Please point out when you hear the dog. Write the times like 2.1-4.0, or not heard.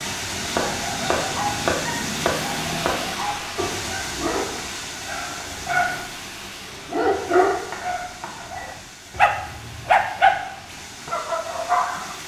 0.6-6.1, 6.7-12.2.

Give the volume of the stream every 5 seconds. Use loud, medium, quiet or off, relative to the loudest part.
loud, medium, medium.